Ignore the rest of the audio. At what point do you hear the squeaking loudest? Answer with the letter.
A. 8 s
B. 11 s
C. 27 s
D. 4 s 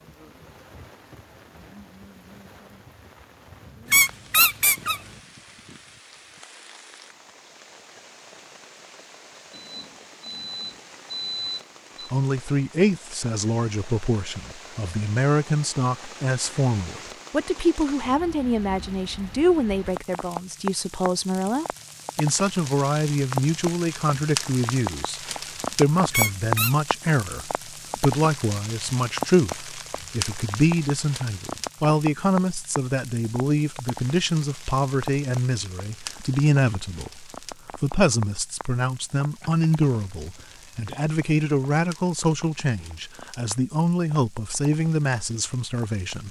D.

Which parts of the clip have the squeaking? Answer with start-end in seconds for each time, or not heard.
3.9-5.0, 26.1-26.8.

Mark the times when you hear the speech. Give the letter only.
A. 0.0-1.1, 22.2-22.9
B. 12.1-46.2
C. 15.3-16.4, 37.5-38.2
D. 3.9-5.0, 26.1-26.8
B.